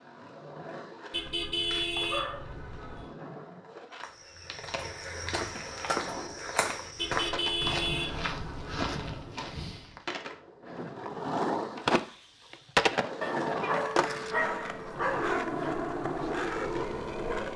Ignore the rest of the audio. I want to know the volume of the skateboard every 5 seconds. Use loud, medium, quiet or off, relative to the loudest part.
quiet, quiet, loud, loud.